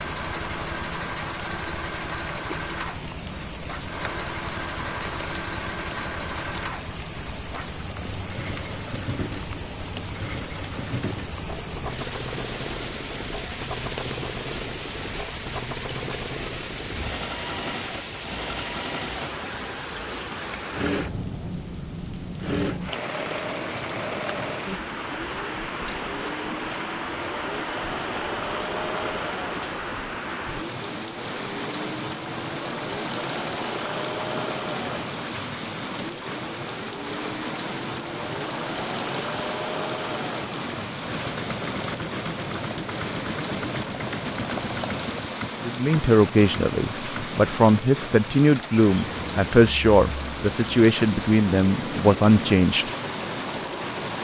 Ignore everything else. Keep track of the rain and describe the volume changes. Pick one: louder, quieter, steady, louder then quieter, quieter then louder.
steady.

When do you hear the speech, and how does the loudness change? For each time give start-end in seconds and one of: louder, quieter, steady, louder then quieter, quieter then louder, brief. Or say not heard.
45.6-52.9 steady.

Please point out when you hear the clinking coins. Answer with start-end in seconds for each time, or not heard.
not heard.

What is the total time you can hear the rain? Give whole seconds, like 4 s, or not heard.
54 s.